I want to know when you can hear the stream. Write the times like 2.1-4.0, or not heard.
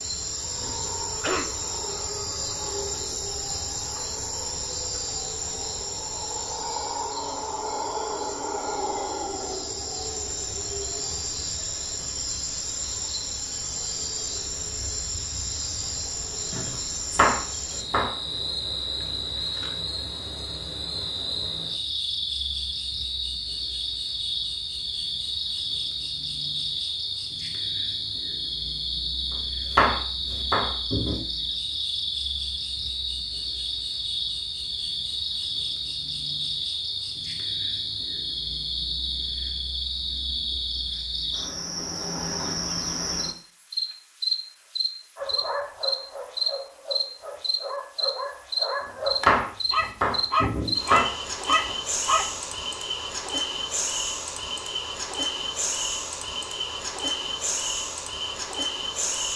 not heard.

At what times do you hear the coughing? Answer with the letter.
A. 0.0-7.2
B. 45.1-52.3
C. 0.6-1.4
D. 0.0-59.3
C.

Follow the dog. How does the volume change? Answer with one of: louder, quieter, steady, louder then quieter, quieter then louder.
louder.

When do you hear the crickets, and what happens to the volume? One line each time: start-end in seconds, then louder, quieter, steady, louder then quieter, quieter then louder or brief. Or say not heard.
0.0-59.3 steady.